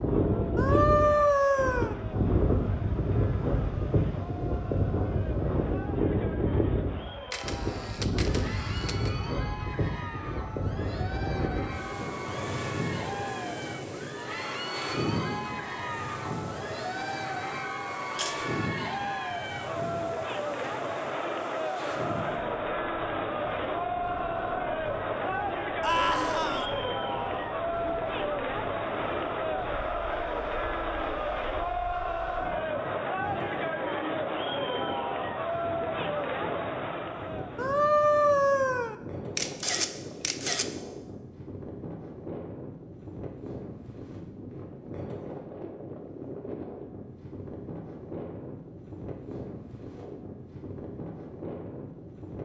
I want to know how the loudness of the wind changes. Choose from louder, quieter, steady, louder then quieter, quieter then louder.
quieter.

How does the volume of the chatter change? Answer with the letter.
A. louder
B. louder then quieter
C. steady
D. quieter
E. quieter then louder
A.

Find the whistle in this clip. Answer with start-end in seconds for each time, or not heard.
not heard.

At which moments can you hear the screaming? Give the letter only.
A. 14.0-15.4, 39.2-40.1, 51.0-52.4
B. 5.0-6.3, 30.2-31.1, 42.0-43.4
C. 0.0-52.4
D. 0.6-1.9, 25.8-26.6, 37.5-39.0
D.